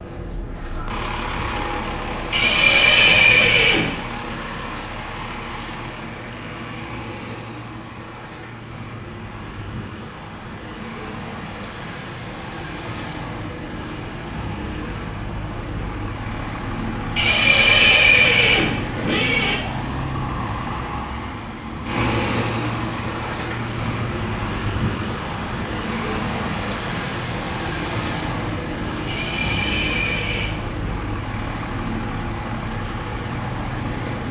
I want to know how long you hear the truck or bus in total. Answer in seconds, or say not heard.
34 s.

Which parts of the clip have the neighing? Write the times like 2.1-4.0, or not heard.
2.3-4.0, 17.1-19.6, 29.1-30.6.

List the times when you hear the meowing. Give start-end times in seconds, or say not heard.
not heard.